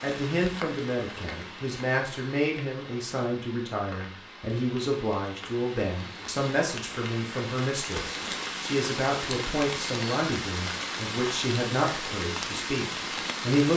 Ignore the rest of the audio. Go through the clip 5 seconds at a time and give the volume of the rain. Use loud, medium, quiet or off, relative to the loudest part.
medium, loud, loud.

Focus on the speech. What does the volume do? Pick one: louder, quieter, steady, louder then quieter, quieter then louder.
steady.